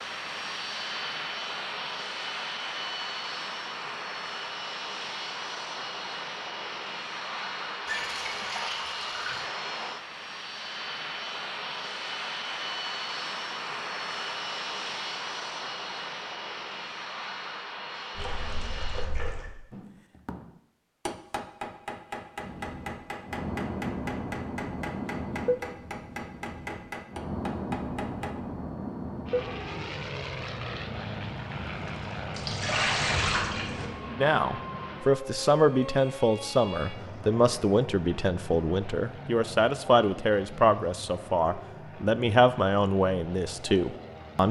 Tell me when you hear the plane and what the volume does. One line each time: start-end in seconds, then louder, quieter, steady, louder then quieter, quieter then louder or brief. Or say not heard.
0.0-19.1 steady
22.4-44.4 quieter.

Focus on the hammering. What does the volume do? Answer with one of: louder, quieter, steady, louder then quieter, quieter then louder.
steady.